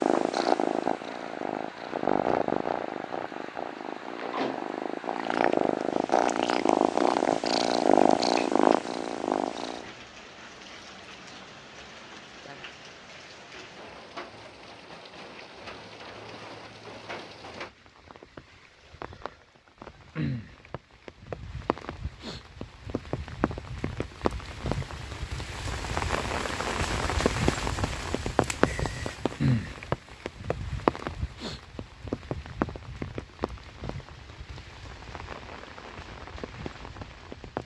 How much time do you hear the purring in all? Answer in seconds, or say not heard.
10 s.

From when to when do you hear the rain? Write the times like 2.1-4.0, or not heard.
0.0-37.6.